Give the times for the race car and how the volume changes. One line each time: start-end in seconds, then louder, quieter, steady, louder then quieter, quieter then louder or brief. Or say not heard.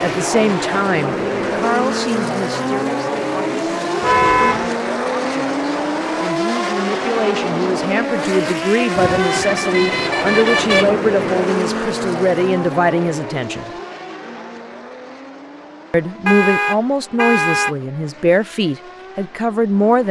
0.0-20.0 quieter.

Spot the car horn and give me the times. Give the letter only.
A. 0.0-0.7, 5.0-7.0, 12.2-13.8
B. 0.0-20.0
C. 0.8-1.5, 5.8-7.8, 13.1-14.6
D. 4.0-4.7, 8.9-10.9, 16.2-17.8
D.